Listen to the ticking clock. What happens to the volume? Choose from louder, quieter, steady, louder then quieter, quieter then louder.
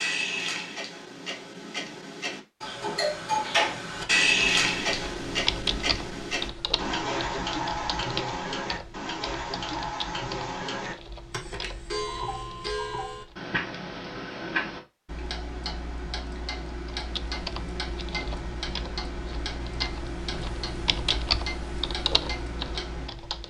quieter.